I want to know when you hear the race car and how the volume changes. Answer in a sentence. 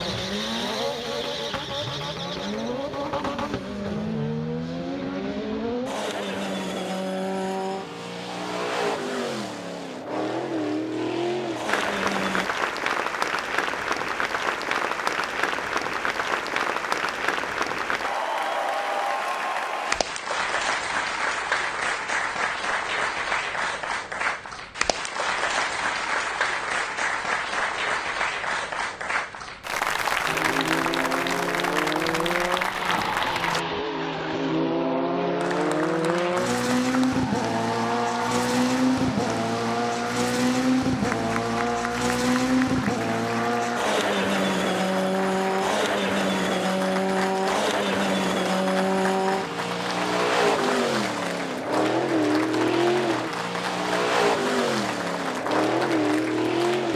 The race car can be heard from 0.0 to 12.5 s, at a steady volume; and from 30.2 to 56.9 s, at a steady volume.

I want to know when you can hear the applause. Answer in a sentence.
You can hear the applause from 11.7 to 33.6 s and from 35.4 to 56.9 s.